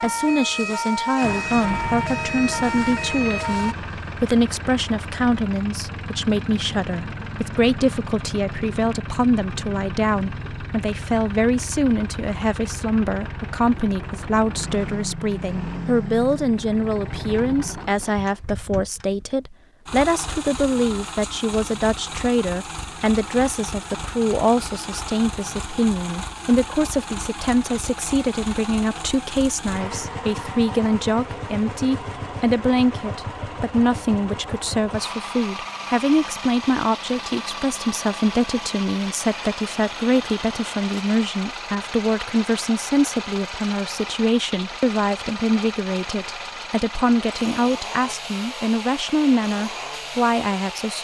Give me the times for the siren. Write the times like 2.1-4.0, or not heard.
0.0-3.8.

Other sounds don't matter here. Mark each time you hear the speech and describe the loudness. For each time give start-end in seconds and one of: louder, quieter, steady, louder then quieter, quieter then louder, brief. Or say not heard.
0.0-50.9 steady.